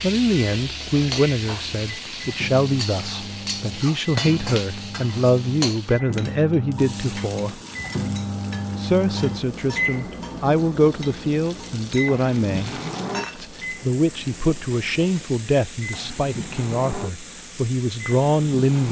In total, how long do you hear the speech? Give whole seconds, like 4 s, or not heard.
17 s.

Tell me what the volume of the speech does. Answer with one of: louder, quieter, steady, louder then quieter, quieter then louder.
steady.